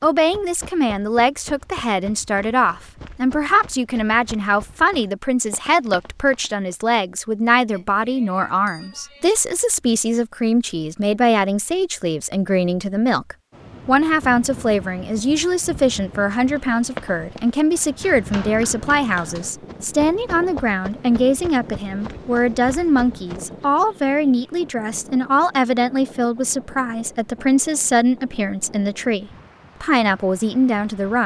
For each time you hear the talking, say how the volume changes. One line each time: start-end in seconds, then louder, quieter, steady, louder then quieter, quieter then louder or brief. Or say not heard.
0.0-31.2 steady.